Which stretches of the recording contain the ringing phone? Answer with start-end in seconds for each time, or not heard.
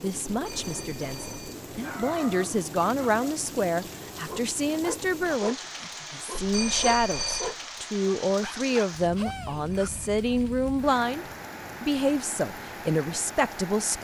0.3-1.6, 6.3-7.5, 9.5-10.5.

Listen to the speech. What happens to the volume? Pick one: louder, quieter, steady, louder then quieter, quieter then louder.
steady.